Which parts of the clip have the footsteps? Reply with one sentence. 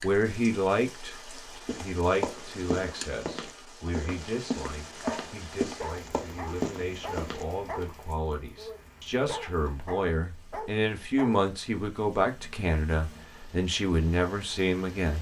The footsteps can be heard from 1.6 to 7.5 s.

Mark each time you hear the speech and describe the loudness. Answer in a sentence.
You can hear the speech from 0.0 to 15.1 s, getting quieter then louder.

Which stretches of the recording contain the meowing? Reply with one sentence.
You can't hear the meowing here.